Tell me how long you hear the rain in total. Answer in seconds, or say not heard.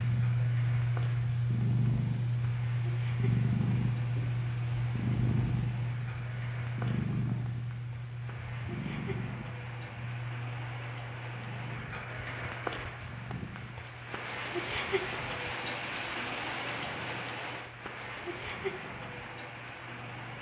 20 s.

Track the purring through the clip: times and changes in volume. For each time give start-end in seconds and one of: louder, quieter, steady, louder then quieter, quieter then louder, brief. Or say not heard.
0.0-20.3 quieter.